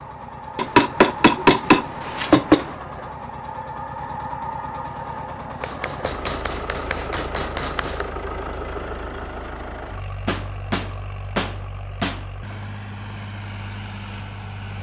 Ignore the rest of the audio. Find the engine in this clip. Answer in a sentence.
The engine can be heard from 0.0 to 14.7 s.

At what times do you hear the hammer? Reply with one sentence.
The hammer can be heard from 0.6 to 2.8 s, from 5.6 to 8.1 s and from 10.2 to 12.6 s.